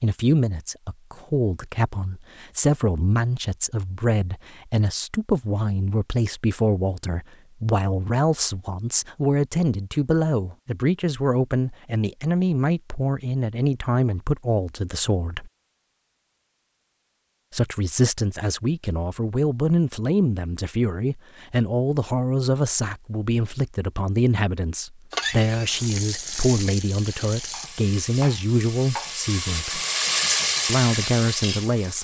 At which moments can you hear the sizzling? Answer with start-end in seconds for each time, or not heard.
25.1-31.9.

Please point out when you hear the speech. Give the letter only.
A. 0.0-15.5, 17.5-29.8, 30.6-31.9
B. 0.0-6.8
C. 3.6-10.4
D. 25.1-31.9
A.